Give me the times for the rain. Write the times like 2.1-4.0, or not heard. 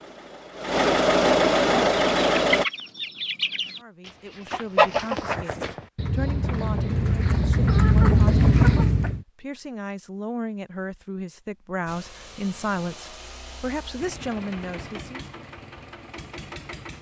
not heard.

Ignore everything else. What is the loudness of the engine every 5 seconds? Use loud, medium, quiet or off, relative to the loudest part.
loud, off, quiet, quiet.